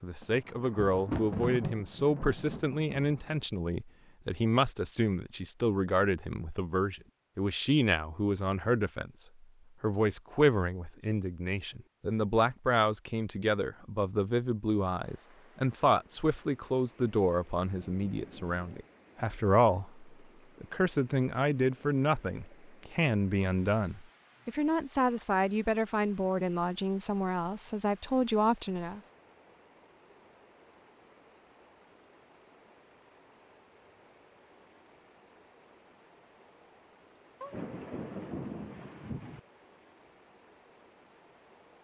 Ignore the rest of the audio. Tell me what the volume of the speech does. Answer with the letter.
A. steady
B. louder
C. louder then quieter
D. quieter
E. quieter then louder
A.